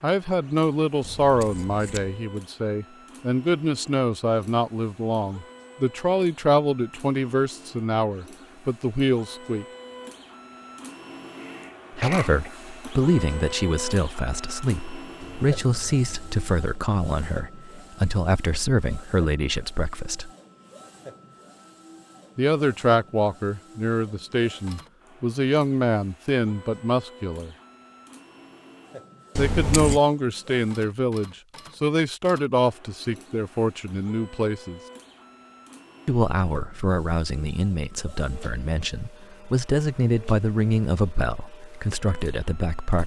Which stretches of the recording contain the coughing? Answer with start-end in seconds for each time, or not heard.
11.4-12.5.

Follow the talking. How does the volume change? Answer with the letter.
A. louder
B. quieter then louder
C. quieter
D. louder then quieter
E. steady
E.